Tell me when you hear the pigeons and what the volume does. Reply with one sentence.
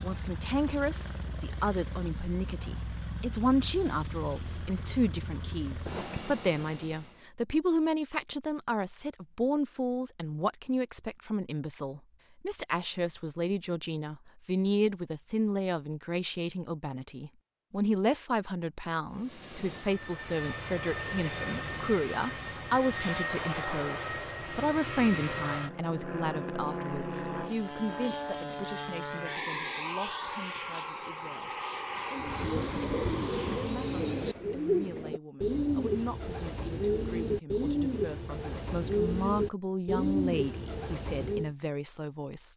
You can hear the pigeons from 32.1 to 41.5 s, at a steady volume.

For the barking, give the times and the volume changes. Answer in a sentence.
The barking can't be heard in this clip.